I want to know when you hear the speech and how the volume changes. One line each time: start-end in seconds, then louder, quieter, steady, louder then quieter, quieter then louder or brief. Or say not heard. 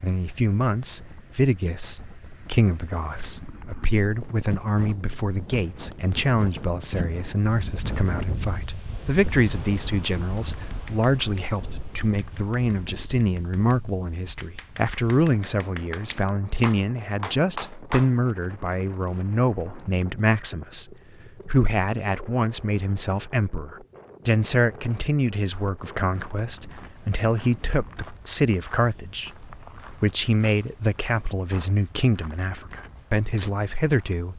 0.0-34.3 steady.